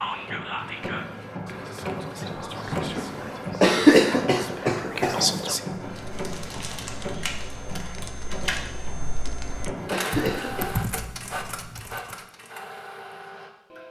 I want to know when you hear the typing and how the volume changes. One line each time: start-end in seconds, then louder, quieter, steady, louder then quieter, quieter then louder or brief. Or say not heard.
6.0-12.2 louder.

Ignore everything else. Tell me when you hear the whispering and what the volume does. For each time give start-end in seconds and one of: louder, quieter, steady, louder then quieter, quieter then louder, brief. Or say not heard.
0.0-5.6 quieter then louder.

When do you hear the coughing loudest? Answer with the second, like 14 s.
4 s.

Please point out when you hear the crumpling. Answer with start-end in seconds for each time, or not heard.
6.0-8.7.